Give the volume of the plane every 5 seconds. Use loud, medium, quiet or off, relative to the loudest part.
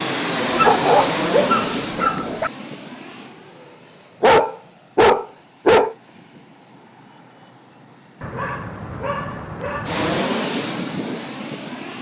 loud, quiet, loud.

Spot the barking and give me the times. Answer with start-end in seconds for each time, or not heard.
0.5-2.5, 4.2-6.0, 8.2-10.2.